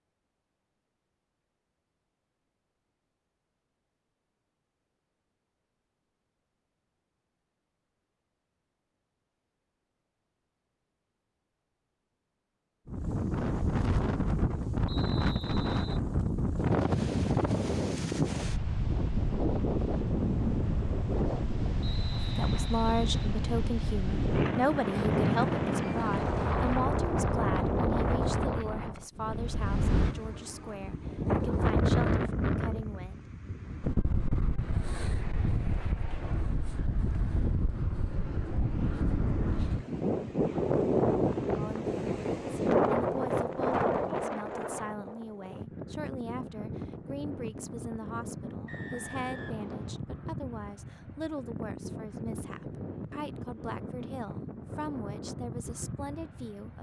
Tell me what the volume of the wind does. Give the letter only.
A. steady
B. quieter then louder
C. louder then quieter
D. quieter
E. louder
D.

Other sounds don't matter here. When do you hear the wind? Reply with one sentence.
The wind can be heard from 12.8 to 56.7 s.